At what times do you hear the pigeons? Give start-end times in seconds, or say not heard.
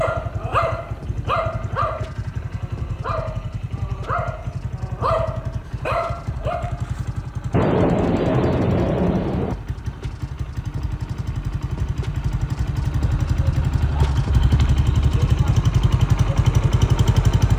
not heard.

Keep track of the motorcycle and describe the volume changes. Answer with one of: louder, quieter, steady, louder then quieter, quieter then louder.
louder.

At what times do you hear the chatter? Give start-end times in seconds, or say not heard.
not heard.